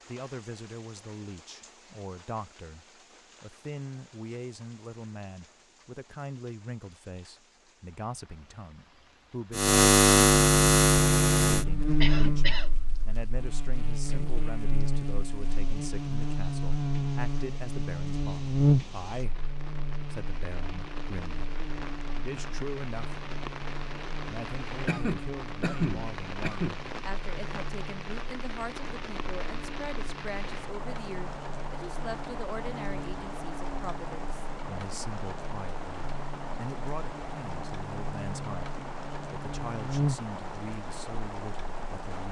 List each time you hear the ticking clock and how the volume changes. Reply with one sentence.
The ticking clock can't be heard in this clip.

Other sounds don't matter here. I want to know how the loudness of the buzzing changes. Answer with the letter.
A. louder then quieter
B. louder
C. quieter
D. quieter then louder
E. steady
C.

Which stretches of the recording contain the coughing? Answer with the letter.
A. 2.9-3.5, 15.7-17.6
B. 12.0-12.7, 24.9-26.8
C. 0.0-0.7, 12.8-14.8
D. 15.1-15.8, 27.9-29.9
B.